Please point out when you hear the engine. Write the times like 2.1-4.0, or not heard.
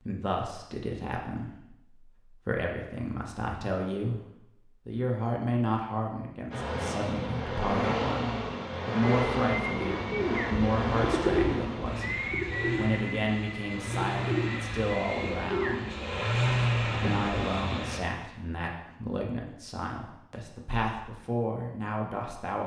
6.5-18.0.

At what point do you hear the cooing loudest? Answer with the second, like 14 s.
11 s.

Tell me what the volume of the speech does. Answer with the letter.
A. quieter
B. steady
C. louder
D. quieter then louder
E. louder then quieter
B.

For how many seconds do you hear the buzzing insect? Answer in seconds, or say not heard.
not heard.